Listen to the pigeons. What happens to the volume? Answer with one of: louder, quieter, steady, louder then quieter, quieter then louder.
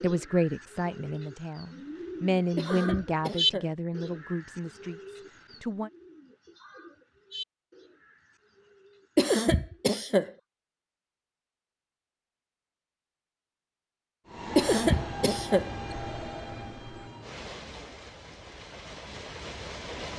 louder then quieter.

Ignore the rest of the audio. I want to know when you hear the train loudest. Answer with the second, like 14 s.
15 s.